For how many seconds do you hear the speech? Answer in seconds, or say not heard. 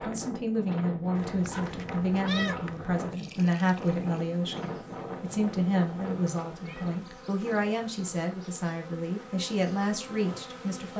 11 s.